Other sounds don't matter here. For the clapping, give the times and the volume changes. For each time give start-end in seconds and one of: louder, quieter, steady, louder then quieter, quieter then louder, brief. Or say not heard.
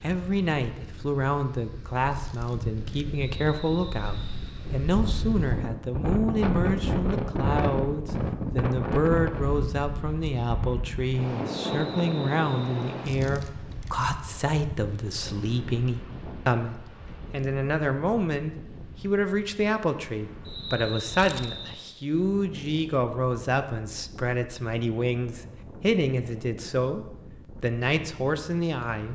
not heard.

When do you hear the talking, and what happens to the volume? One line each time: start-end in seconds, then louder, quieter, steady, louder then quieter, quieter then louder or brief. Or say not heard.
0.0-29.0 steady.